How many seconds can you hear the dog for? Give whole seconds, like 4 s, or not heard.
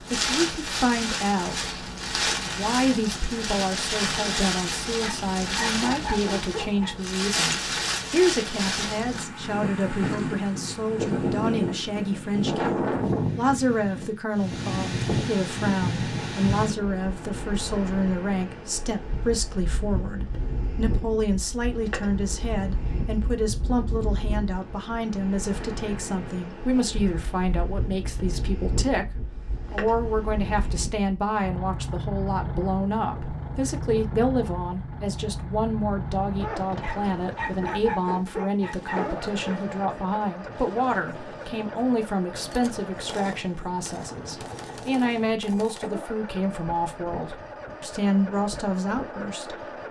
5 s.